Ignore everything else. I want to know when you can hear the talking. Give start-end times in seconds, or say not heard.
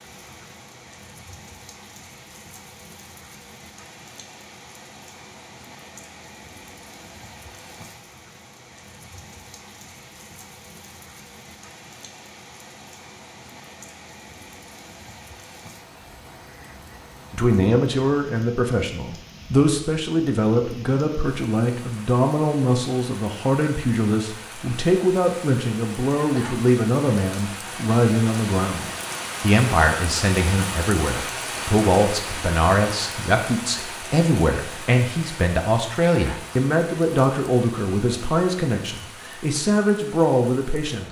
17.3-41.0.